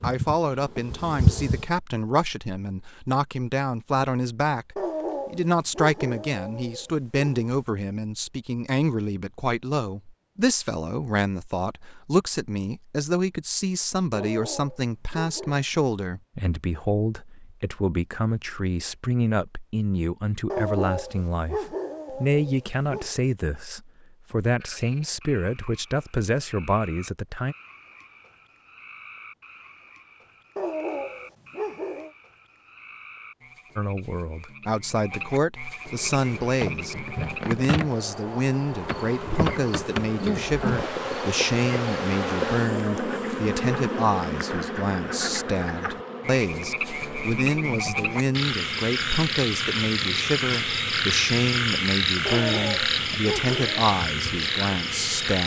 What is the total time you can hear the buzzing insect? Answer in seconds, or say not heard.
21 s.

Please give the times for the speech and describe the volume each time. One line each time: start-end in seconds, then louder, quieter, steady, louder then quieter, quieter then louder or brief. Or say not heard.
0.0-27.6 steady
33.8-55.4 steady.